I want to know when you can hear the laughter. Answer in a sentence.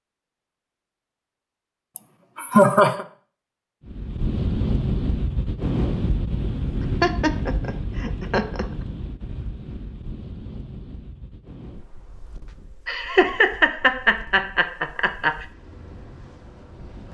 You can hear the laughter from 1.9 to 3.0 s, from 7.0 to 8.7 s and from 12.8 to 15.4 s.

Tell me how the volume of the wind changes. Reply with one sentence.
The volume of the wind goes down.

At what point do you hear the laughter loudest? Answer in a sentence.
The loudest moment of the laughter is at 3 seconds.